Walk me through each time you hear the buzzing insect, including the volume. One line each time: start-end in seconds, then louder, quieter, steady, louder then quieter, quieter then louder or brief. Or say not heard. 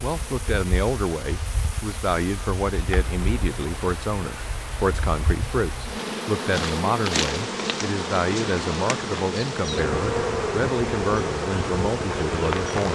0.0-12.9 louder.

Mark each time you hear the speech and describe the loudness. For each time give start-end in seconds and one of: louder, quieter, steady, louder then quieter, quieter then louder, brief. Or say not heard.
0.0-12.9 steady.